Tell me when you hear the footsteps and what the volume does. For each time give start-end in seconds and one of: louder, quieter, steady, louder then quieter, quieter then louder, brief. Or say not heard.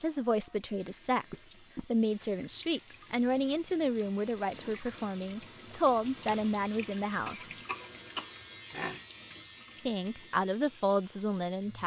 not heard.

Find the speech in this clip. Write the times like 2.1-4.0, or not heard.
0.0-7.5, 9.8-11.8.